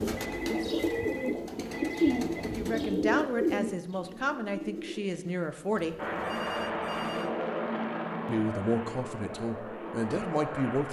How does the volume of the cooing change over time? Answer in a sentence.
The loudness of the cooing goes down.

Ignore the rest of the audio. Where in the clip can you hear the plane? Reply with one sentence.
The plane can be heard from 6.0 to 10.8 s.